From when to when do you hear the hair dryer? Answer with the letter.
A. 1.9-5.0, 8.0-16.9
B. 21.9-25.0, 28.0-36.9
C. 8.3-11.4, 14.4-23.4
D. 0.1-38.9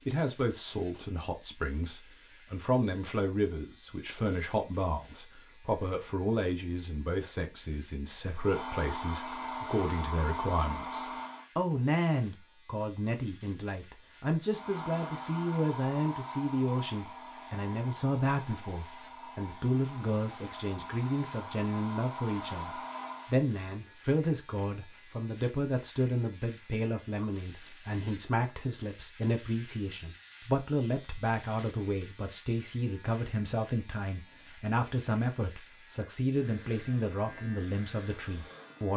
C.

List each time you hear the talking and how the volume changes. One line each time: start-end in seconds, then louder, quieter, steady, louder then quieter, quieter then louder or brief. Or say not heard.
0.1-38.9 steady.